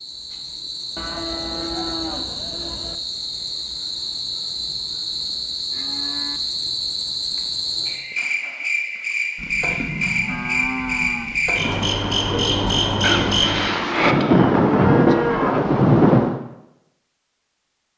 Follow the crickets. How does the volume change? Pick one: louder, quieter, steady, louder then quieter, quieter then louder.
louder.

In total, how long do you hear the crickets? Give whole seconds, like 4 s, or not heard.
14 s.